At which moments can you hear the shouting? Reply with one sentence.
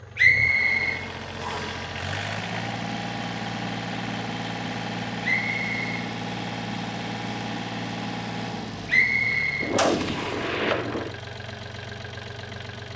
You can't hear the shouting here.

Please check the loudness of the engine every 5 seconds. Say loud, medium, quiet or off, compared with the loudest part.
loud, loud, medium.